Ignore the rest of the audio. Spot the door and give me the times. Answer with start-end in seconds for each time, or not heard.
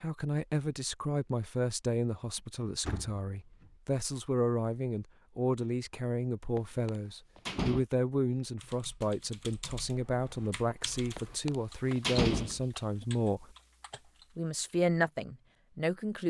2.9-3.7, 6.5-7.8, 11.2-13.1.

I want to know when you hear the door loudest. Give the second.
12 s.